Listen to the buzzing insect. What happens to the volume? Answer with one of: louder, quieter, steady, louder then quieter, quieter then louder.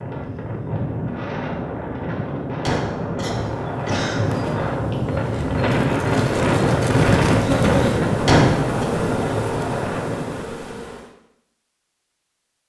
louder then quieter.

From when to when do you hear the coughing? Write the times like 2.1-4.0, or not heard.
2.6-4.3, 8.2-8.8.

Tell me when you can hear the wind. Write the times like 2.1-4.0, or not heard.
0.0-10.6.